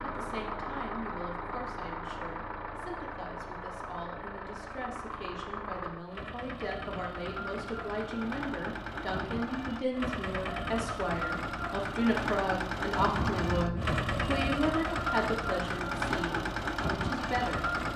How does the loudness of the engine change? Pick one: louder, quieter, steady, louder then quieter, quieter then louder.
louder.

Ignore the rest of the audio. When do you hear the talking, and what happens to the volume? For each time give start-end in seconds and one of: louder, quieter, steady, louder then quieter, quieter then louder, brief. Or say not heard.
0.0-17.6 louder.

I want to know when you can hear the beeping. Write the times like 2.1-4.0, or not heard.
13.2-14.5.